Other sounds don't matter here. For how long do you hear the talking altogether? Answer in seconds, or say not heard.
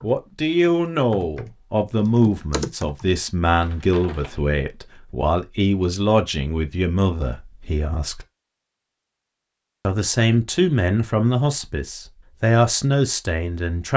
12 s.